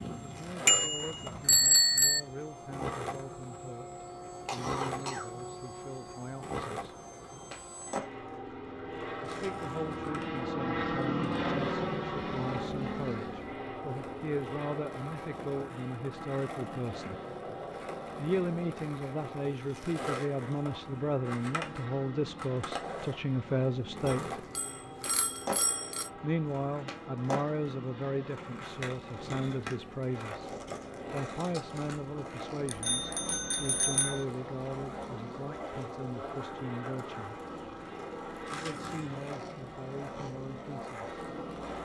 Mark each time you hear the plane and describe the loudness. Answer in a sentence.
The plane can be heard from 0.0 to 41.8 s, getting louder then quieter.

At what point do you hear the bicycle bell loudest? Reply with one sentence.
The volume of the bicycle bell peaks at 2 seconds.